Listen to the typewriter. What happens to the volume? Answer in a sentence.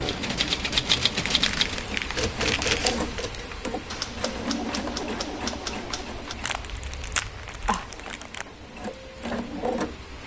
The volume of the typewriter goes down.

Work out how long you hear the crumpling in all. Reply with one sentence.
The crumpling can be heard for 4 seconds in total.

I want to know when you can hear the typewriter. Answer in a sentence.
You can hear the typewriter from 0.0 to 6.3 s.